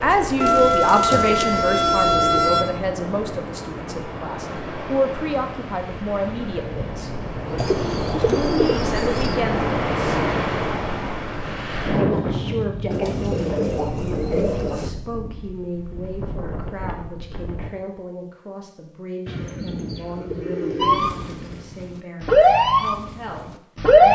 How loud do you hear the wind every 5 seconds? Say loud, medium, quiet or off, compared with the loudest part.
medium, loud, loud, medium, off.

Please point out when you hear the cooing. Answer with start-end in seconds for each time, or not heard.
0.4-2.5, 7.5-9.4, 12.9-14.9, 19.2-21.6.